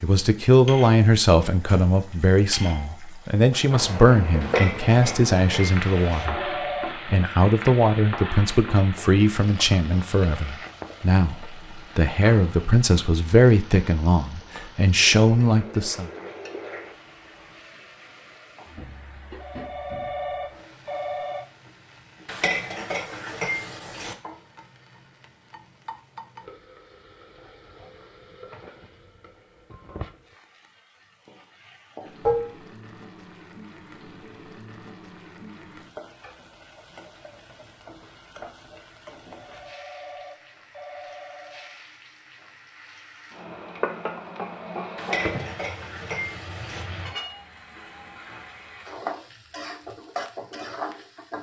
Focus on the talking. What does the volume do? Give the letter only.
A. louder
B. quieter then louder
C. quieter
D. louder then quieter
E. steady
E.